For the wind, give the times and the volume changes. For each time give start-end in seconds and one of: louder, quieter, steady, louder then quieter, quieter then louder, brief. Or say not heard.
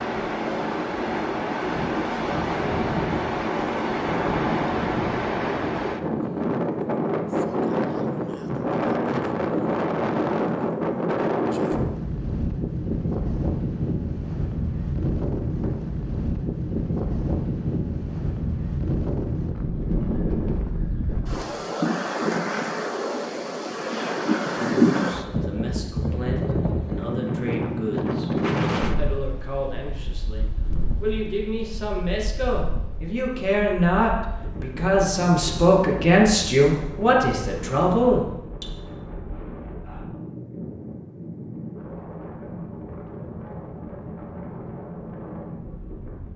0.0-46.3 quieter.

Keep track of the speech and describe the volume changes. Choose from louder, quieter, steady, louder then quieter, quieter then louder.
louder.